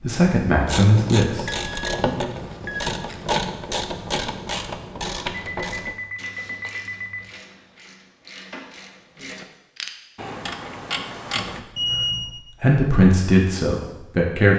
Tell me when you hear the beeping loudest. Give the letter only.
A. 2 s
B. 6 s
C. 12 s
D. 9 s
C.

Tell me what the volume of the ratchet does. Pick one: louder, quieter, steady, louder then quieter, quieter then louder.
quieter then louder.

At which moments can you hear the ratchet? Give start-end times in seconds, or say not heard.
0.6-11.6.